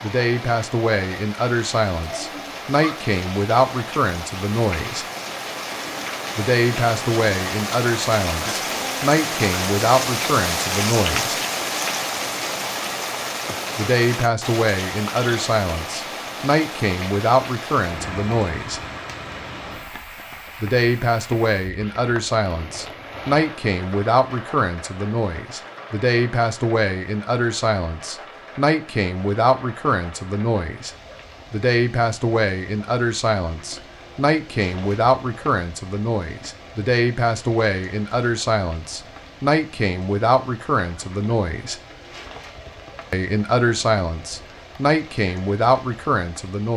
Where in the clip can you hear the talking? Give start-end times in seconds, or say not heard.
0.0-5.0, 6.3-11.4, 13.8-18.8, 20.6-30.9, 31.5-41.8, 43.1-46.7.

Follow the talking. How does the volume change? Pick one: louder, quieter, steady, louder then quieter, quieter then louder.
steady.